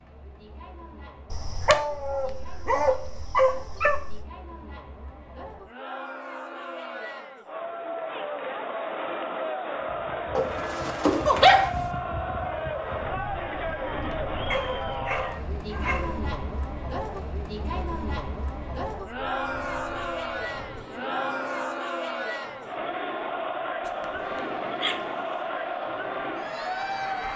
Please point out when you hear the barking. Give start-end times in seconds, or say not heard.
1.3-4.2, 10.3-11.8, 14.5-16.2, 23.9-25.5.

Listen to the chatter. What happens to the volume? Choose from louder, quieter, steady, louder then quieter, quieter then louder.
louder.